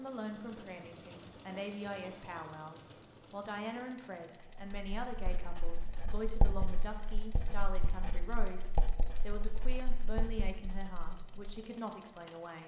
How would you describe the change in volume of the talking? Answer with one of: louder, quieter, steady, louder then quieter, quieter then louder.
steady.